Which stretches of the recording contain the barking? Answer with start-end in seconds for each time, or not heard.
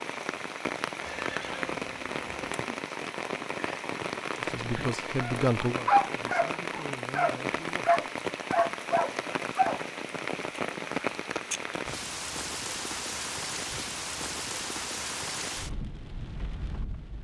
4.8-9.8.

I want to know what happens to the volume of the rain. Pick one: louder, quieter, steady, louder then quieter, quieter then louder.
steady.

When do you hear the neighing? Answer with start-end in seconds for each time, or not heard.
1.0-2.5.